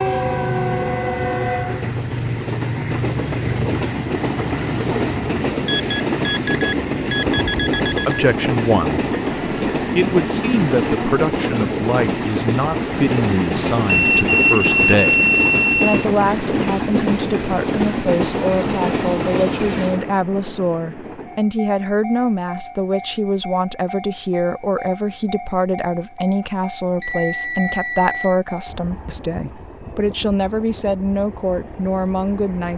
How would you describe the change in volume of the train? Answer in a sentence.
The loudness of the train goes down.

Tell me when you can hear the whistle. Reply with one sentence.
You can't hear the whistle here.